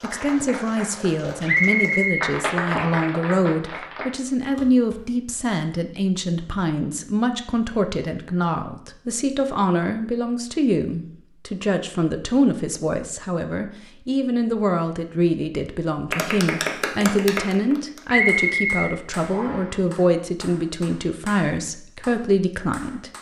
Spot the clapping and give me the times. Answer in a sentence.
You can hear the clapping from 0.0 to 5.0 s and from 16.1 to 23.1 s.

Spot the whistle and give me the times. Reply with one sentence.
You can hear the whistle from 1.4 to 3.0 s and from 18.1 to 19.7 s.